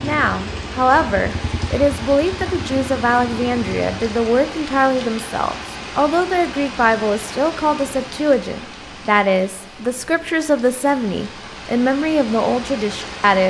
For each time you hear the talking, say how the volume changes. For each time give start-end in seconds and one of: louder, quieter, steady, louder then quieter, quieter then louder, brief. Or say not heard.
0.0-13.4 steady.